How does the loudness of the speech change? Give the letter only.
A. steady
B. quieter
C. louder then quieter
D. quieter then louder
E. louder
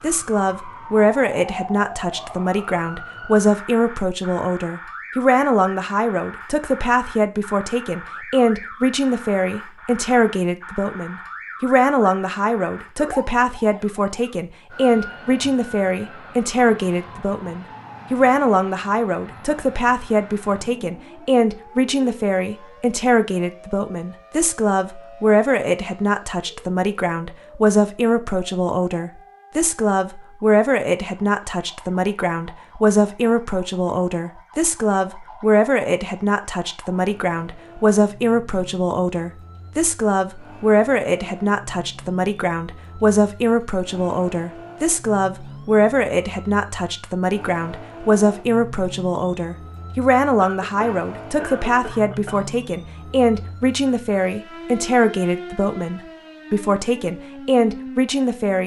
A.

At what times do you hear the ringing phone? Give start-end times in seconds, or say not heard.
not heard.